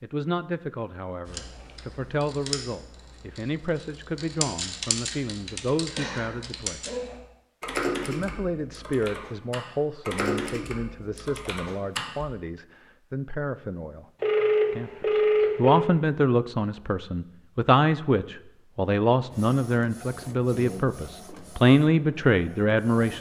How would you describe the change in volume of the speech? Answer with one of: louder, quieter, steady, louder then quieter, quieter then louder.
louder.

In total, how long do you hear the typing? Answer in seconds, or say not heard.
11 s.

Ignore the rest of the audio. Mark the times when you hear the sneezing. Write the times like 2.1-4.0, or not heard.
5.9-7.0.